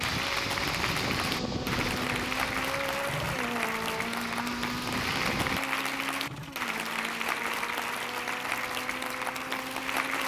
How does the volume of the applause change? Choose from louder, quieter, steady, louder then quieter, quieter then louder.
steady.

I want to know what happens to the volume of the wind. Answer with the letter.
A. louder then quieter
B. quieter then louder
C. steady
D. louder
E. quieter
B.